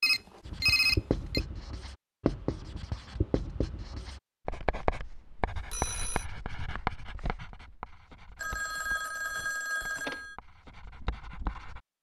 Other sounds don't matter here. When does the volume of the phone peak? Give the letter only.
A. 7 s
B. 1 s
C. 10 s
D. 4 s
B.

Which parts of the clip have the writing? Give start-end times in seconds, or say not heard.
0.5-11.8.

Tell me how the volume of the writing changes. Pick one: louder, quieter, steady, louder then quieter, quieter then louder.
quieter.